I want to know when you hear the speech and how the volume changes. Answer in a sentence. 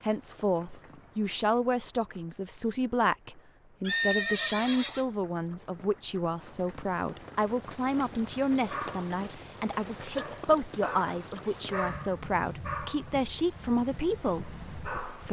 You can hear the speech from 0.0 to 15.2 s, at a steady volume.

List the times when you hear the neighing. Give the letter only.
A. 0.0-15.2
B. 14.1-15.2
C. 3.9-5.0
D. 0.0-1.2
C.